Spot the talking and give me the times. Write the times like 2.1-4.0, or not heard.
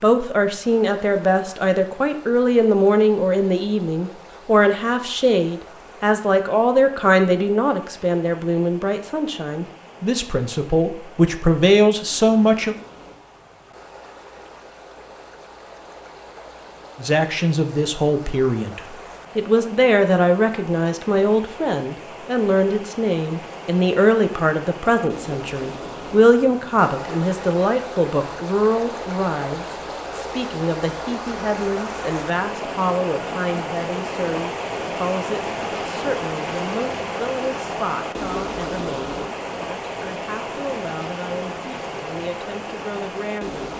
0.0-12.8, 16.9-43.7.